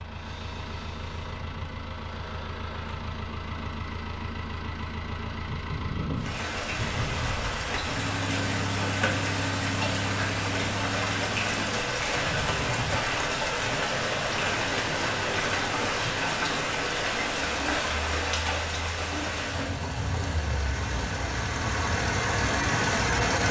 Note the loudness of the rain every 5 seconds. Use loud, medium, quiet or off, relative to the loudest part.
off, loud, loud, loud, medium.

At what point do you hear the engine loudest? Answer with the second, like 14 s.
23 s.